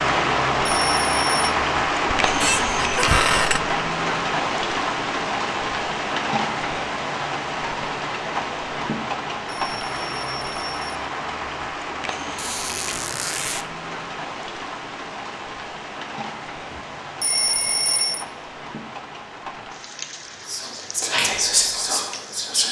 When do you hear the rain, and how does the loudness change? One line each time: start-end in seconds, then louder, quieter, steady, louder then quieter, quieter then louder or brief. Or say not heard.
0.0-22.6 quieter.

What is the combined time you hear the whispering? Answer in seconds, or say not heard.
2 s.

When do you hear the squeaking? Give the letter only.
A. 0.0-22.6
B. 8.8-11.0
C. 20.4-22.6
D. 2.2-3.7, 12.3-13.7
D.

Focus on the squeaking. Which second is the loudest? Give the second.
3 s.